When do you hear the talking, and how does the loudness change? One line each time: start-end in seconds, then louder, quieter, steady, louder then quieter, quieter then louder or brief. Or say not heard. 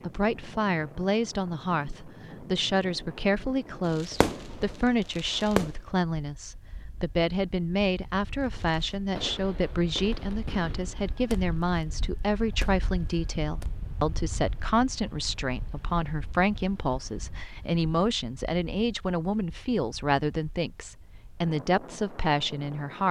0.0-23.0 steady.